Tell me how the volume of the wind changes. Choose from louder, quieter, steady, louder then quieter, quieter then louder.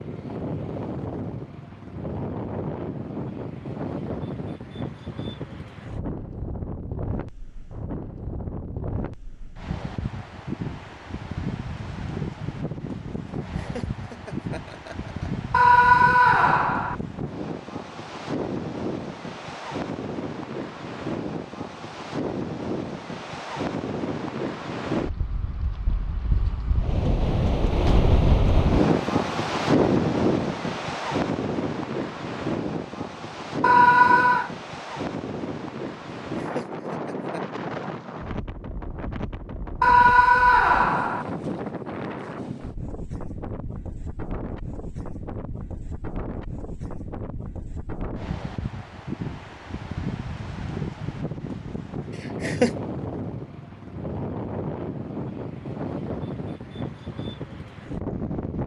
louder then quieter.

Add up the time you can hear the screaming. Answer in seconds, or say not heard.
4 s.